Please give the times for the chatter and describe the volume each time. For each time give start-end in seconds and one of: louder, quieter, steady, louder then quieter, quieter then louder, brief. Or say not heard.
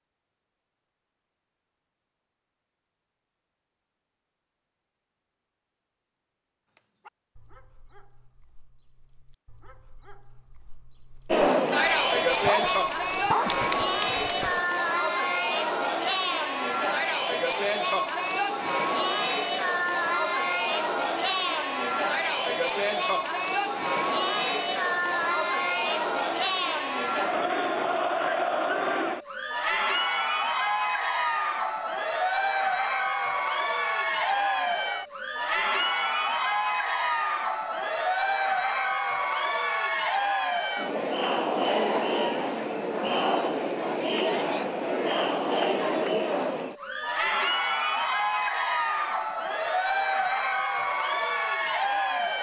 11.3-52.3 steady.